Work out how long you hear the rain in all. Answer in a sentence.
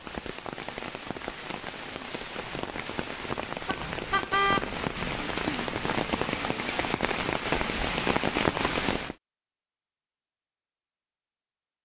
You can hear the rain for 9 seconds altogether.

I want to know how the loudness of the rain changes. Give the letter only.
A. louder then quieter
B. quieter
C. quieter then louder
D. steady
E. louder
E.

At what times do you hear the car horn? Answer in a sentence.
The car horn can be heard from 3.6 to 4.7 s.